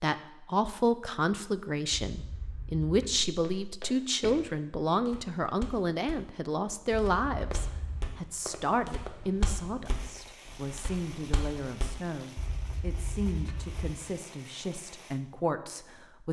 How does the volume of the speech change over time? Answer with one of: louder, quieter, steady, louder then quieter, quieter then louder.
quieter.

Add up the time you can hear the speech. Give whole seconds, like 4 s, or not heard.
16 s.